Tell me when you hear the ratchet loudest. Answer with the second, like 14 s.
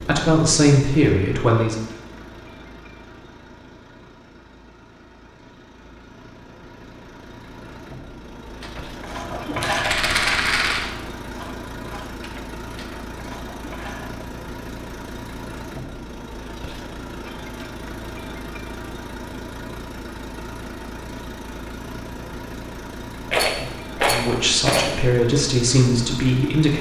10 s.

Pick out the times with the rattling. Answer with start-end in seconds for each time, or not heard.
9.6-10.8, 23.2-24.9.